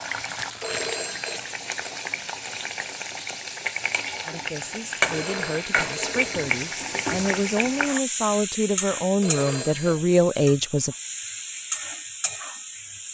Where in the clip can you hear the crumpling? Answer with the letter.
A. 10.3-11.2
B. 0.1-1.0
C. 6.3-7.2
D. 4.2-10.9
B.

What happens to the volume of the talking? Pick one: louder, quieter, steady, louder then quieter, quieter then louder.
louder.